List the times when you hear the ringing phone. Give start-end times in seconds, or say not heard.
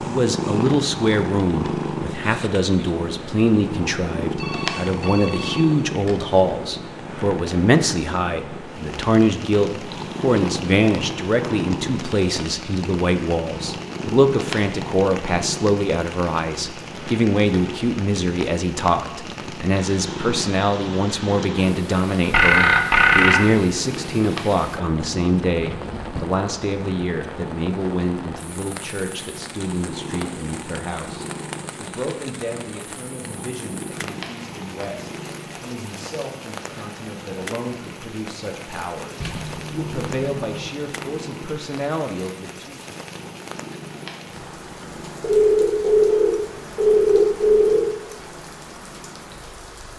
4.2-6.3, 22.3-23.5, 45.2-47.9.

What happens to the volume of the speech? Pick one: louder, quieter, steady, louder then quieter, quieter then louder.
quieter.